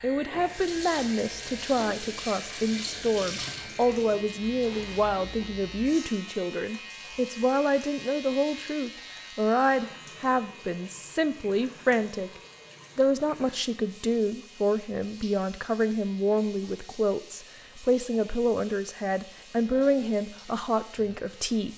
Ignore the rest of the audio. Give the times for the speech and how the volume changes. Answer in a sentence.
The speech can be heard from 0.0 to 21.7 s, at a steady volume.